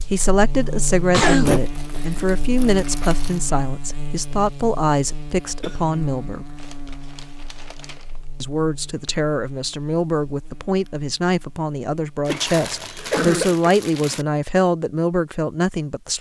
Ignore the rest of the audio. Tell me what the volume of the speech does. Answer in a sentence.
The loudness of the speech stays about the same.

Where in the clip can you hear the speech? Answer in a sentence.
The speech can be heard from 0.0 to 6.5 s and from 8.4 to 16.1 s.